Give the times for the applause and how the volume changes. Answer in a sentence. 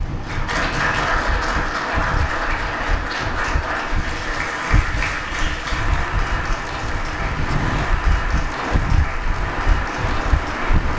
The applause can be heard from 0.0 to 10.9 s, getting quieter.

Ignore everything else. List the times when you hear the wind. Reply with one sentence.
You can hear the wind from 0.0 to 10.9 s.